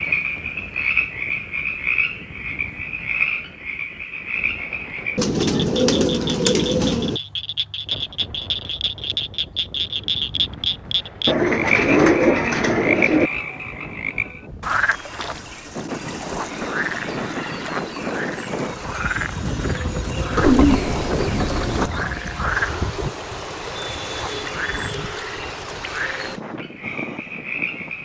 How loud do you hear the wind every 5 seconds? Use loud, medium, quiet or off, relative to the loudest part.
quiet, quiet, medium, loud, loud, medium.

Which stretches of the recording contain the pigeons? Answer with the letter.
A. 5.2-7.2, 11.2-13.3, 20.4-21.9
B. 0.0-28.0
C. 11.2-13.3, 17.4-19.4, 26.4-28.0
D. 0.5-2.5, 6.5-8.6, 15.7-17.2
A.